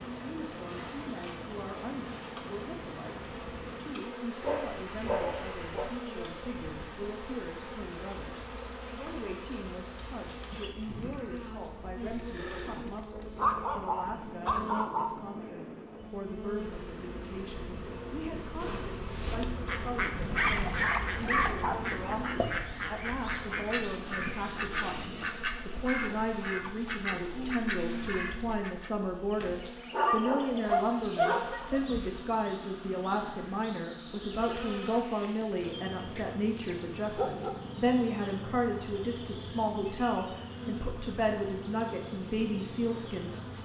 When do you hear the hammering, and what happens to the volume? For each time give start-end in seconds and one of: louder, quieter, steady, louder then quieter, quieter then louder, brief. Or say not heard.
not heard.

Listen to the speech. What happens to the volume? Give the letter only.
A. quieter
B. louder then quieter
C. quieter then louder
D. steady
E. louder
E.